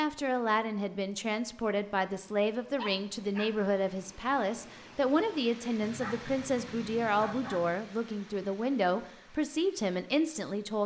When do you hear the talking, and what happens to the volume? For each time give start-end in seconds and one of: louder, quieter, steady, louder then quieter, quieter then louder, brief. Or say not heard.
0.0-10.8 steady.